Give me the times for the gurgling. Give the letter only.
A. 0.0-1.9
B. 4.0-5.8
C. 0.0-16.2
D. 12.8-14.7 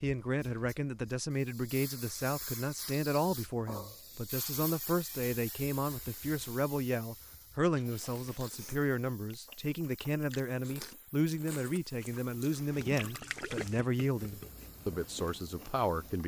D.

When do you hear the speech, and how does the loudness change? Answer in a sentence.
The speech can be heard from 0.0 to 16.2 s, at a steady volume.